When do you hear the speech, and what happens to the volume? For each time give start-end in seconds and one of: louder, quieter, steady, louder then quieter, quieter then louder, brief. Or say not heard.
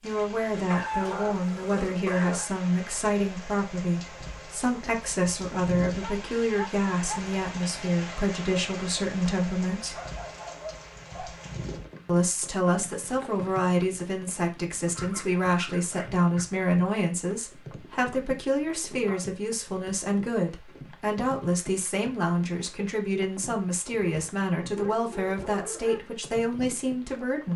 0.0-9.9 steady
12.1-27.5 steady.